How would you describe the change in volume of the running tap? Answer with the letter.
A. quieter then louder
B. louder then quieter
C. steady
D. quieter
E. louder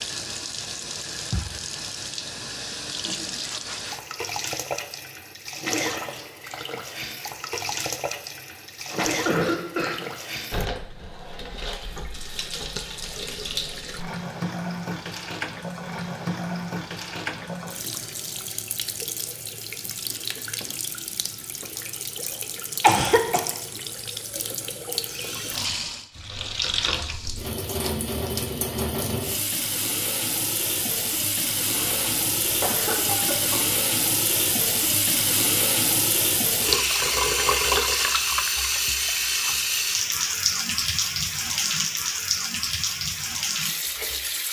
E.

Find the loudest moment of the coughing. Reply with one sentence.
The volume of the coughing peaks at 23 seconds.